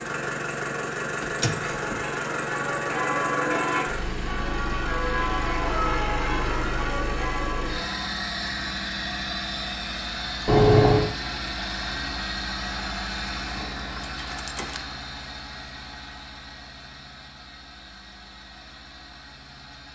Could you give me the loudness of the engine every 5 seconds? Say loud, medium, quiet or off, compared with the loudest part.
loud, loud, loud, quiet.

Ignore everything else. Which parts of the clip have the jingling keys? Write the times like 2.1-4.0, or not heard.
1.2-2.1, 10.4-11.1, 13.6-14.8.